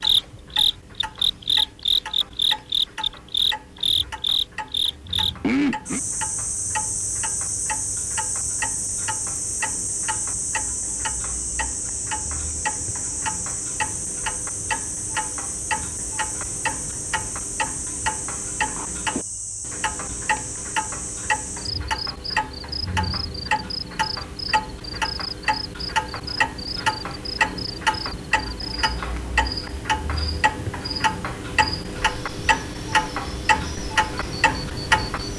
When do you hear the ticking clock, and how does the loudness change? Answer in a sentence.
The ticking clock can be heard from 0.0 to 35.3 s, getting louder.